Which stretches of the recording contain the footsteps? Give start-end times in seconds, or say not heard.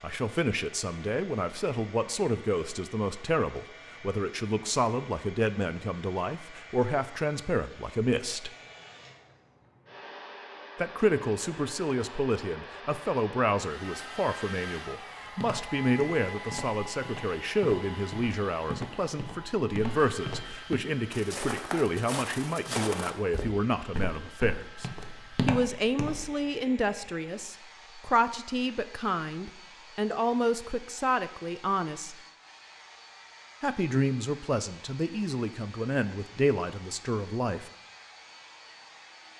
15.3-26.4.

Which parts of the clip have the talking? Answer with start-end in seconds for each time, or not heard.
0.0-8.5, 10.8-24.9, 25.4-32.1, 33.6-37.7.